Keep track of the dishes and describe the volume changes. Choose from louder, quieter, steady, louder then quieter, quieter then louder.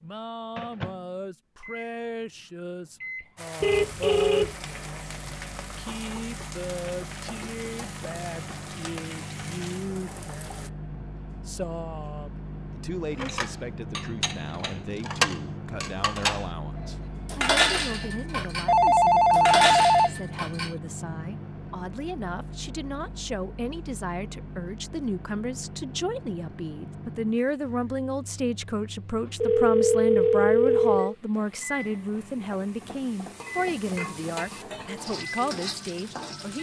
louder.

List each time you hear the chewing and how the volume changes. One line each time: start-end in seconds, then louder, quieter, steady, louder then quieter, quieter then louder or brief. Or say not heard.
not heard.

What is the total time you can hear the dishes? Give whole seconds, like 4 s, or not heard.
8 s.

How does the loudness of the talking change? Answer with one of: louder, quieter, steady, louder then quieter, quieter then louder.
louder.